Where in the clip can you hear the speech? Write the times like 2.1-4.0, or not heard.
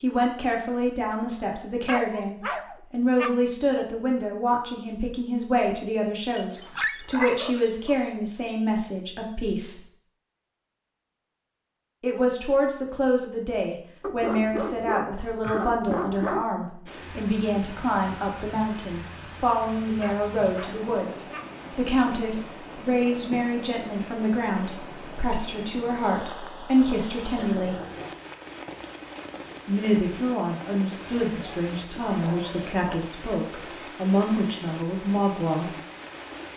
0.0-9.8, 12.0-27.8, 29.6-35.8.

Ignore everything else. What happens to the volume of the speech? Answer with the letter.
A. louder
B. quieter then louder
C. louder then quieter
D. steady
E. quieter
D.